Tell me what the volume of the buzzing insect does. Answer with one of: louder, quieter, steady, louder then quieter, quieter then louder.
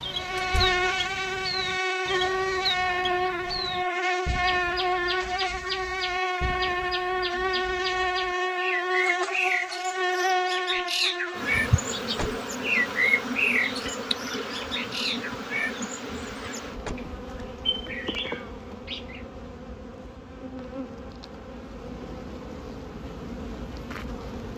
quieter.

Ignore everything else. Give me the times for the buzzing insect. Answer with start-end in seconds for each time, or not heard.
0.1-24.5.